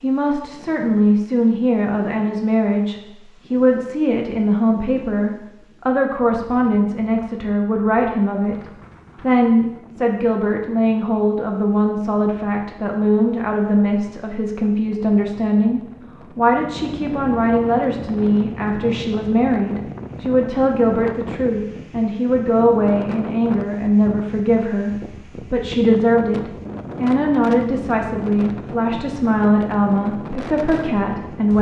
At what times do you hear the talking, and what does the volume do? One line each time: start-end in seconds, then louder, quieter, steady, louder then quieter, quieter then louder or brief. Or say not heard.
0.0-31.5 steady.